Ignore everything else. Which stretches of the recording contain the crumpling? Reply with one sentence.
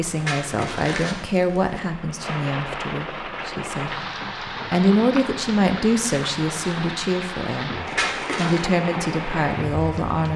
You can hear the crumpling from 0.1 to 1.8 s and from 7.8 to 8.7 s.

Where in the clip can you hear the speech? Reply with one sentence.
The speech can be heard from 0.0 to 4.0 s and from 4.7 to 10.3 s.